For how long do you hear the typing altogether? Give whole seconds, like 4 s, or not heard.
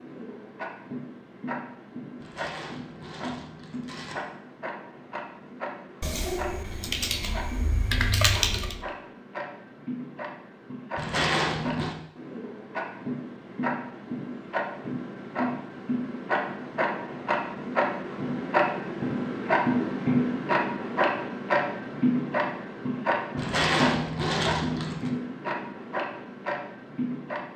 3 s.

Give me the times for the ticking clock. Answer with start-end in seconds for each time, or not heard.
0.0-27.5.